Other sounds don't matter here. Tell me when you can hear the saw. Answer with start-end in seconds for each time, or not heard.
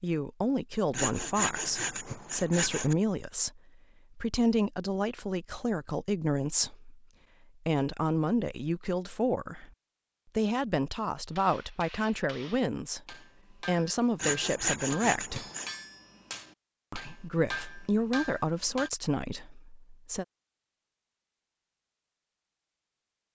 0.9-3.0, 14.2-15.7.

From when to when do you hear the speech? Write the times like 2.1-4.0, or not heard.
0.0-7.0, 7.7-9.7, 10.3-15.4, 16.9-20.2.